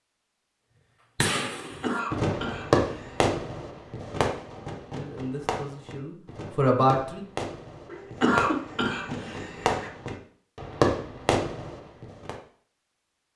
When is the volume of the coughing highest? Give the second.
8 s.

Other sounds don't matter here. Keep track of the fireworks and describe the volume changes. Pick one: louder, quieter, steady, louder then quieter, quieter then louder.
quieter then louder.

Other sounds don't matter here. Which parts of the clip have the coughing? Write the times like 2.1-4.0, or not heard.
1.6-3.3, 7.8-9.9.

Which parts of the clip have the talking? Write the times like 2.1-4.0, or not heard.
5.0-7.2.